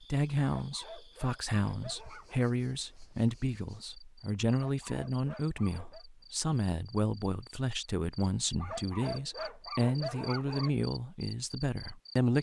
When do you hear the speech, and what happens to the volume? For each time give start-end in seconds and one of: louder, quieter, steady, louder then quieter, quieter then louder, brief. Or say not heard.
0.0-12.3 steady.